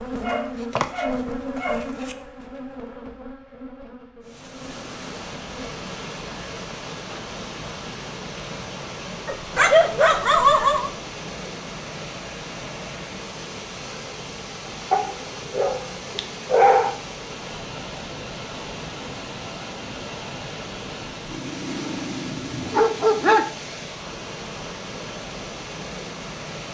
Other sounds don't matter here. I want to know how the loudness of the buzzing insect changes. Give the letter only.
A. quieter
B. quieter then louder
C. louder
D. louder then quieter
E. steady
A.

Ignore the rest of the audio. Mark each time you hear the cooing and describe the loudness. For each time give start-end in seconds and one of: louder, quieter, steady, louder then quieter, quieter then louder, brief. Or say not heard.
not heard.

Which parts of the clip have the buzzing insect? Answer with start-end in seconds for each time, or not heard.
0.0-5.7.